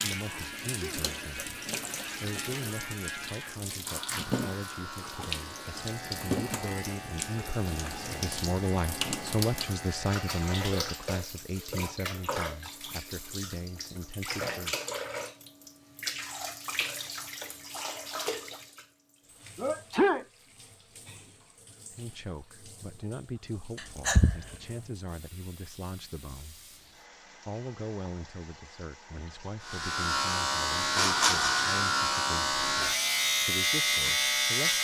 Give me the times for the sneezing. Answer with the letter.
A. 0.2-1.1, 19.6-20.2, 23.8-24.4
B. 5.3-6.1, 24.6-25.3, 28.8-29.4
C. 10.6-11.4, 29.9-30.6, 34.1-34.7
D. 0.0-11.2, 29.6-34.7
A.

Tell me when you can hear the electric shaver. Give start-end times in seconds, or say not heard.
0.0-11.2, 29.6-34.7.